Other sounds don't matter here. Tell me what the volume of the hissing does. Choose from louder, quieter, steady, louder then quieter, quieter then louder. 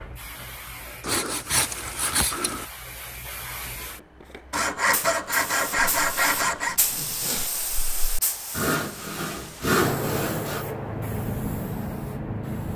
louder.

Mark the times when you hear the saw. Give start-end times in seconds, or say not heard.
1.0-2.6, 4.5-6.8, 8.6-10.7.